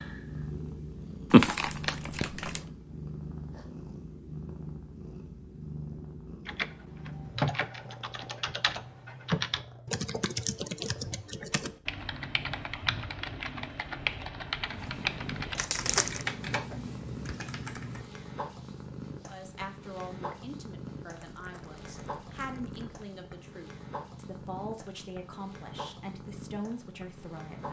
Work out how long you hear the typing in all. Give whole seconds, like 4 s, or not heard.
12 s.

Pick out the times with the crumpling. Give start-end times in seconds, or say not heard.
1.3-2.6, 15.6-16.2, 21.1-23.1.